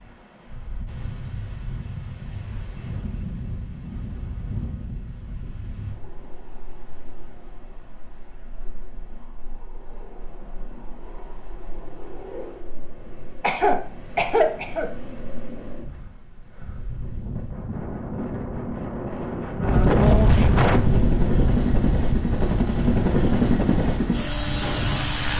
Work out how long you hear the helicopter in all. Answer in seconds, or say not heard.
5 s.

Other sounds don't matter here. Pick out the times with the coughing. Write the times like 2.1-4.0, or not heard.
13.4-14.8.